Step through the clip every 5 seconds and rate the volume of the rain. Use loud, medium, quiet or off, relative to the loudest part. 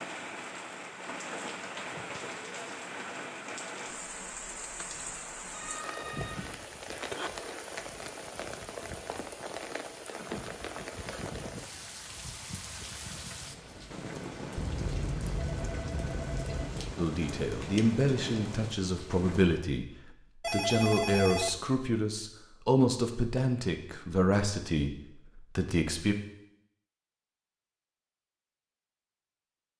loud, loud, loud, loud, off, off.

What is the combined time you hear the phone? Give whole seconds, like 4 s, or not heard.
5 s.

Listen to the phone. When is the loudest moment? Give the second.
21 s.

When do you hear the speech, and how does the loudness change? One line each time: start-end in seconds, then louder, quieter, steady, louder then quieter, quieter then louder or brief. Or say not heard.
16.9-26.1 steady.